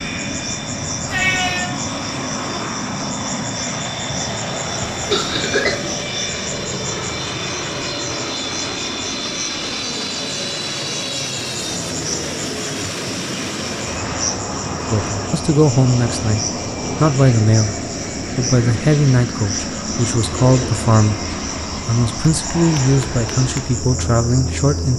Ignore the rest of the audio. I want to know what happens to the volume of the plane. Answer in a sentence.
The loudness of the plane stays about the same.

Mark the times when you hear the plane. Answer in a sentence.
You can hear the plane from 0.0 to 24.9 s.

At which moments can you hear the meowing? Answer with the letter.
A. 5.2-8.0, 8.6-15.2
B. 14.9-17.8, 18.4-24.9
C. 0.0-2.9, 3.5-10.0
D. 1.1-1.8
D.